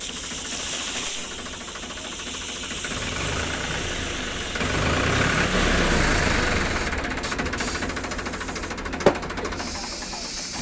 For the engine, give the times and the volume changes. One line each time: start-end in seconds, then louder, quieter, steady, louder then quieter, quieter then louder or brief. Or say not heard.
0.0-10.5 louder then quieter.